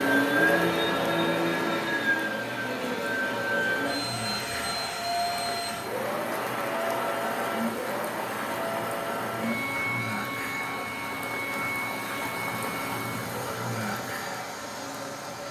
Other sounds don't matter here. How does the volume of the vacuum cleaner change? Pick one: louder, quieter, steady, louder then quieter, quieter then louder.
quieter.